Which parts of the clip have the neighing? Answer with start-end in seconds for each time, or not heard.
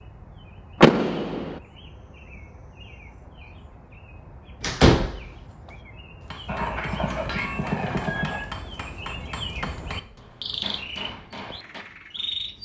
6.5-8.4.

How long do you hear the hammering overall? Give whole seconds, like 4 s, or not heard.
6 s.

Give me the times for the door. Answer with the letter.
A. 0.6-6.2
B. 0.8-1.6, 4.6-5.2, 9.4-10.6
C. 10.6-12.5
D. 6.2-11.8
B.